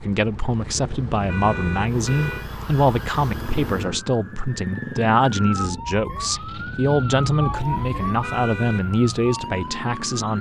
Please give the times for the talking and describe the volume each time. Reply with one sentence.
The talking can be heard from 0.0 to 10.3 s, at a steady volume.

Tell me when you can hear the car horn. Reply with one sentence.
You can hear the car horn from 1.2 to 2.5 s and from 8.2 to 8.8 s.